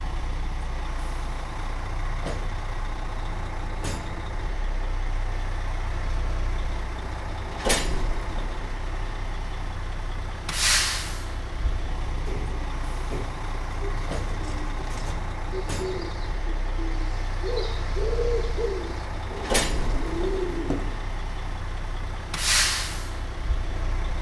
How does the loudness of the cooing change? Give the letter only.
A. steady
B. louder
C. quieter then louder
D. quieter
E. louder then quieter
B.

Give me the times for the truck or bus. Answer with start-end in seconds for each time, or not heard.
0.0-24.1.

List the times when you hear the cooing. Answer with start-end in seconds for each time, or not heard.
11.7-20.9.